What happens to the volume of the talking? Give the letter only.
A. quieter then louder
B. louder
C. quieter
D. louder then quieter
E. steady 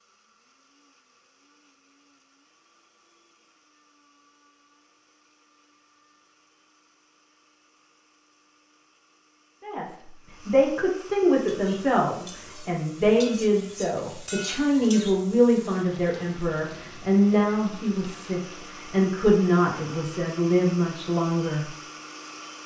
E.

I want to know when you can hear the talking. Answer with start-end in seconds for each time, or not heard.
9.6-21.7.